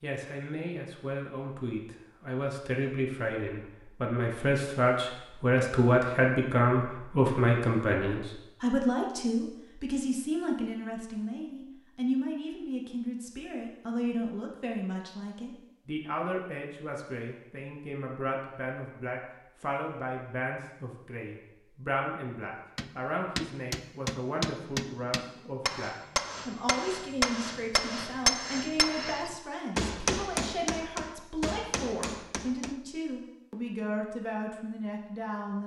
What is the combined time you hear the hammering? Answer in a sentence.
You can hear the hammering for 10 seconds altogether.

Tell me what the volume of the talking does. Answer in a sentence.
The volume of the talking goes down.